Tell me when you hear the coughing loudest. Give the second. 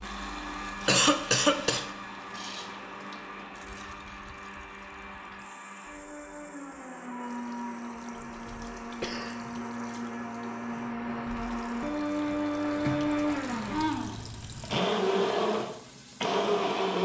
1 s.